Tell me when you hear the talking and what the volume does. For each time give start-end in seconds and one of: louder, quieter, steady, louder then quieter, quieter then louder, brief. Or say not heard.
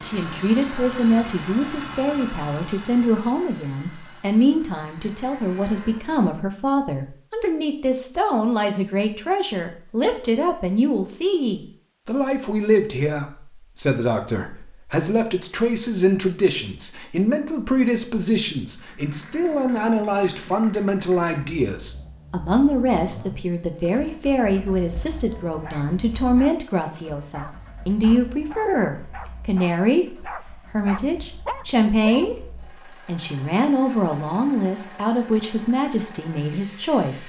0.0-37.2 steady.